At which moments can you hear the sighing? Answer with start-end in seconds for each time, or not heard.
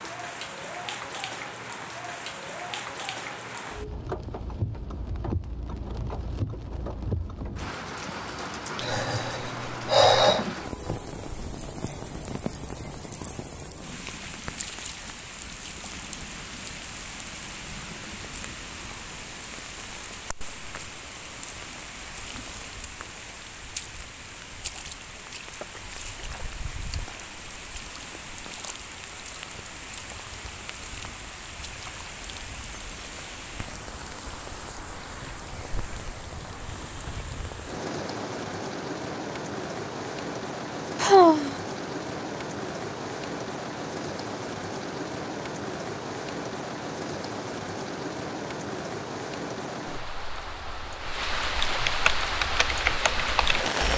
8.8-10.4, 41.0-41.5.